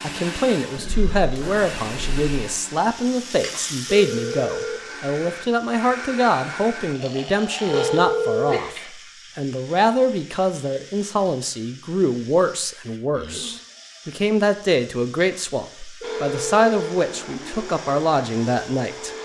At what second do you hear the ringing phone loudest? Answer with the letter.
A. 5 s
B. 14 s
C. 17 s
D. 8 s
D.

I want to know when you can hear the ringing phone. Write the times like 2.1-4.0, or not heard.
4.0-4.8, 7.7-8.6, 16.0-16.7.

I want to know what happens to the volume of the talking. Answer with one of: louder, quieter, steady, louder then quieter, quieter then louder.
steady.